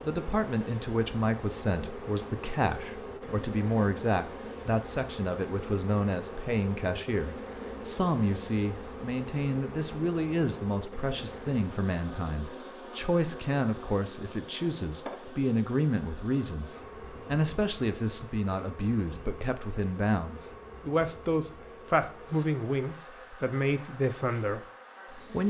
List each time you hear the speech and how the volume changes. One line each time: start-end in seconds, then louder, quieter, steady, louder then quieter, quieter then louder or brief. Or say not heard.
0.0-25.4 steady.